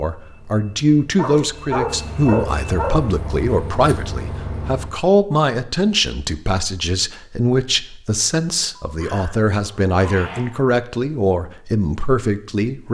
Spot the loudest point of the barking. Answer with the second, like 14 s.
2 s.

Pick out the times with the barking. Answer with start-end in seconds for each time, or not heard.
1.1-3.0, 8.8-10.5.